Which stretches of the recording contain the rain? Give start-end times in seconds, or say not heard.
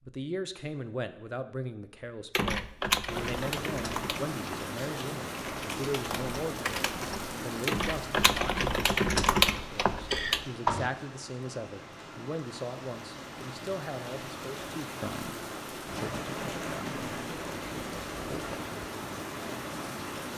3.0-20.3.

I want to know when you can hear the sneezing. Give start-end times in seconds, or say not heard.
not heard.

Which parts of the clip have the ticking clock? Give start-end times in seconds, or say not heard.
not heard.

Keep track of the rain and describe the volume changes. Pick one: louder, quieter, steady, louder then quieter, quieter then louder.
quieter then louder.